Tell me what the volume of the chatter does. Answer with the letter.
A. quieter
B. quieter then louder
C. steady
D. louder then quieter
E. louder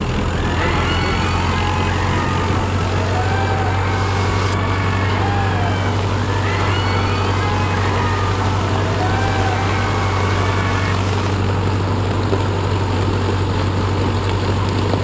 C.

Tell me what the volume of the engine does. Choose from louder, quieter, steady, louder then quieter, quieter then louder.
steady.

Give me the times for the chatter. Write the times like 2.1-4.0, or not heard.
0.3-10.9.